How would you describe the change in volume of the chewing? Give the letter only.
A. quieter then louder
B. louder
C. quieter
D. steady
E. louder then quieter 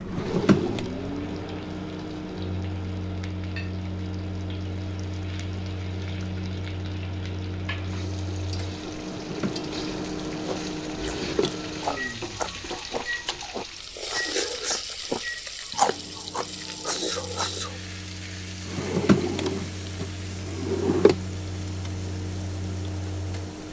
E.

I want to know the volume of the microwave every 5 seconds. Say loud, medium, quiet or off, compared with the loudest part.
loud, loud, loud, medium, loud.